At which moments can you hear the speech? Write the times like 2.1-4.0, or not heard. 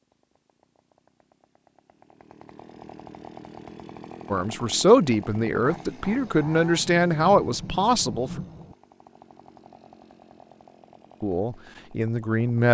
4.3-8.4, 11.2-12.7.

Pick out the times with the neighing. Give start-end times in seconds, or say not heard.
not heard.